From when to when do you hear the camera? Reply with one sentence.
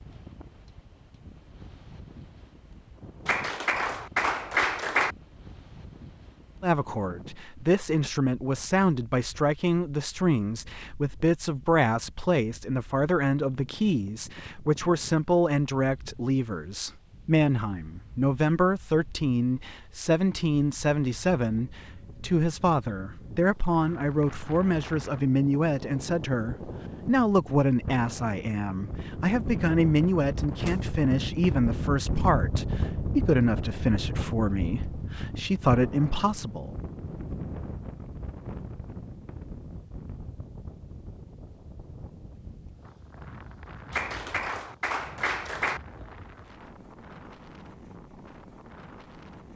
You can't hear the camera here.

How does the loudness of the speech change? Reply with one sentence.
The loudness of the speech stays about the same.